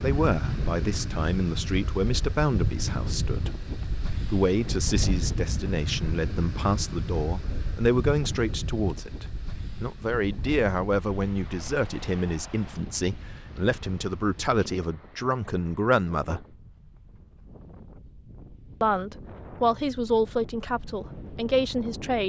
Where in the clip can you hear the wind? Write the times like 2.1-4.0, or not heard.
0.0-22.2.